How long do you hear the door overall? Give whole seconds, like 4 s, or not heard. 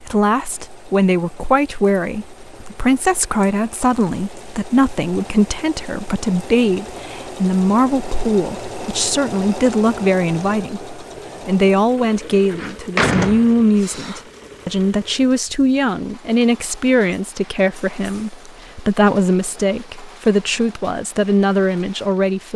2 s.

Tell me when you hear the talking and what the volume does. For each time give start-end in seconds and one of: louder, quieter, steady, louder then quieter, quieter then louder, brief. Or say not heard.
0.0-22.5 steady.